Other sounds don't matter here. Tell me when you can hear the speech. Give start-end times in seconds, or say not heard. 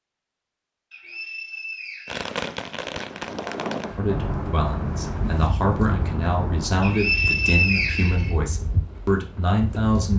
4.0-10.1.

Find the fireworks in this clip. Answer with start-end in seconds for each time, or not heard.
2.0-6.9.